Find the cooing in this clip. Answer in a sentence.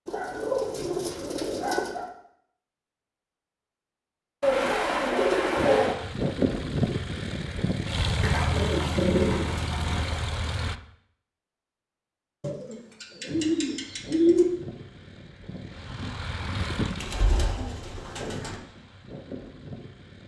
You can hear the cooing from 0.1 to 2.1 s, from 4.4 to 6.0 s, from 8.2 to 10.2 s, from 12.4 to 14.4 s and from 17.0 to 18.6 s.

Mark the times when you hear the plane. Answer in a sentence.
The plane can be heard from 5.5 to 10.8 s and from 13.2 to 20.2 s.